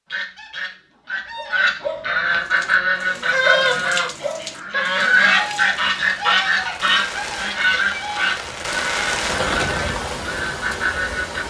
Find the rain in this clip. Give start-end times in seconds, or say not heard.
2.3-11.4.